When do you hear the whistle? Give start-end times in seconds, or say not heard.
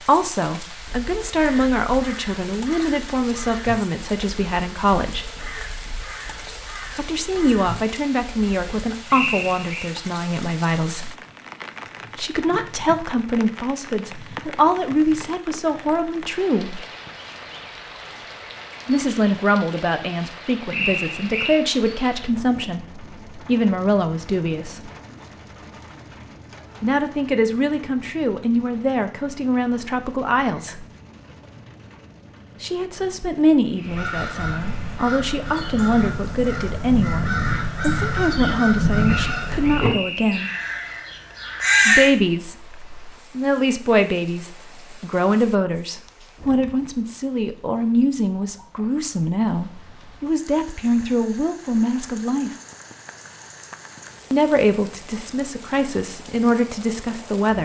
9.1-9.8, 20.7-21.6, 39.1-40.6.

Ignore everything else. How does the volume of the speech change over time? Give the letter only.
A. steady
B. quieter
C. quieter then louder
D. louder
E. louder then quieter
A.